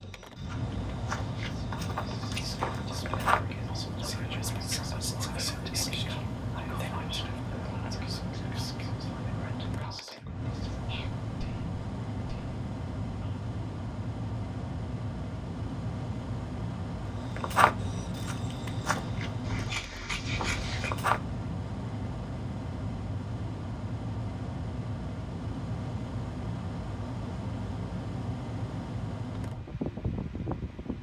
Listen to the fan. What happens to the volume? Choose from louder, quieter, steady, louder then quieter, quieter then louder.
steady.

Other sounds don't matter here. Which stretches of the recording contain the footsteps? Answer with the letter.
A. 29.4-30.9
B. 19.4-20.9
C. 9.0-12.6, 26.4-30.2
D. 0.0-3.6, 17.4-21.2
D.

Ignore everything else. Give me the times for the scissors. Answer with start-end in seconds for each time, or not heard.
19.4-20.9.